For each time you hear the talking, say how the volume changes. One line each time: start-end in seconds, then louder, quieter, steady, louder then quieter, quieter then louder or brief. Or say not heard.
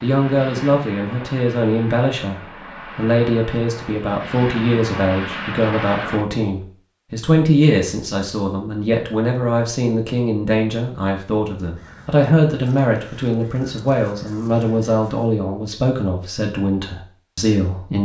0.0-17.9 steady.